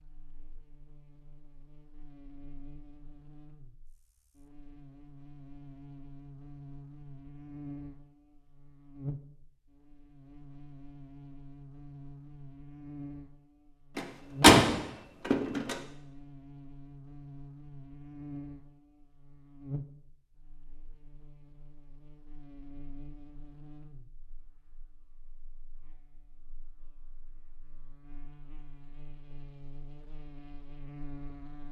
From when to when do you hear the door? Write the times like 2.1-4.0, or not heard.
13.9-15.8.